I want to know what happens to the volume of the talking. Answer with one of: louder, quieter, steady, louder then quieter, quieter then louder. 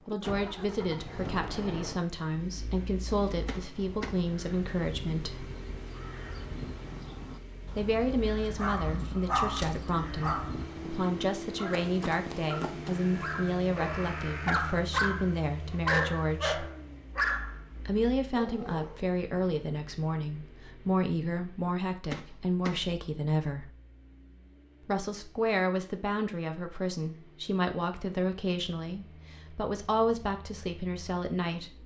steady.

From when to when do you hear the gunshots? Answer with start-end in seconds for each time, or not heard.
3.5-4.2, 22.1-22.9.